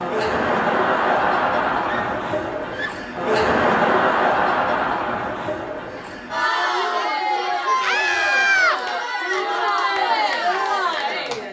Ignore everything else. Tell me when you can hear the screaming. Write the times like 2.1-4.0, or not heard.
1.9-3.0, 7.8-8.8.